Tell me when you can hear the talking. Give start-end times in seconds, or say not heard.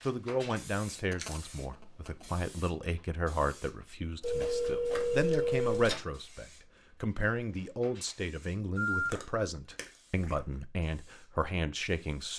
0.0-12.3.